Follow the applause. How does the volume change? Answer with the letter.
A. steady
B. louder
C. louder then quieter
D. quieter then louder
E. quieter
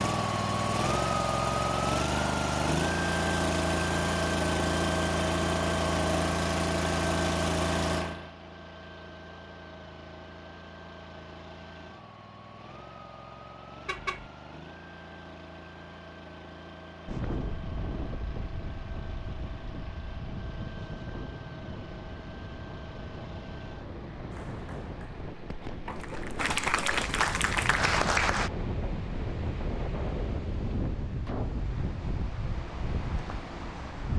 B.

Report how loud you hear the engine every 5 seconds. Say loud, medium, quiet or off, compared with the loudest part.
loud, loud, quiet, quiet, quiet, quiet, quiet.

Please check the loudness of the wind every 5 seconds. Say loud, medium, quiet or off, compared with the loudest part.
off, off, off, loud, medium, loud, loud.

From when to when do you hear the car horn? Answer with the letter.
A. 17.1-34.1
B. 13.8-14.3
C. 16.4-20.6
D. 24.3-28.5
B.